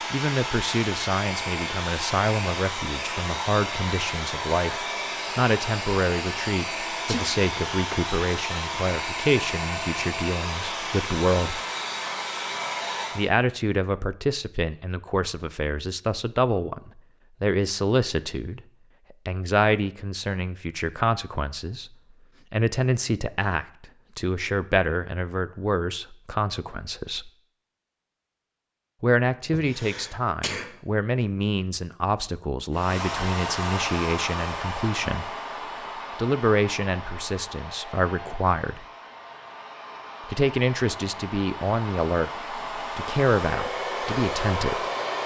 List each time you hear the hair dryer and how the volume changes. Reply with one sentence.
The hair dryer can be heard from 0.0 to 13.3 s, at a steady volume; and from 32.7 to 45.2 s, getting quieter then louder.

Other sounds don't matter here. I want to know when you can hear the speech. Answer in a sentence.
The speech can be heard from 0.1 to 11.6 s, from 13.2 to 27.3 s, from 29.0 to 35.4 s, from 36.1 to 38.9 s and from 40.2 to 44.9 s.